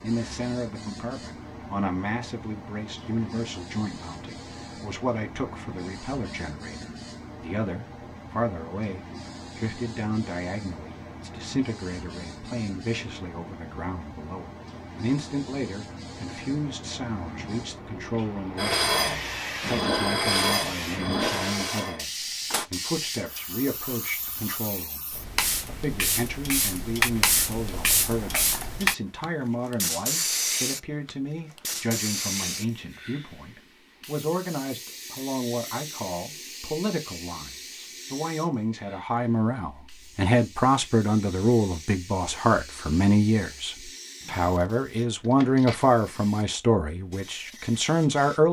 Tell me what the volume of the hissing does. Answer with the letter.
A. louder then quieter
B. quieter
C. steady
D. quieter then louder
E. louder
A.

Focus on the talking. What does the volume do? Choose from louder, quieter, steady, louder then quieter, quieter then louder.
louder.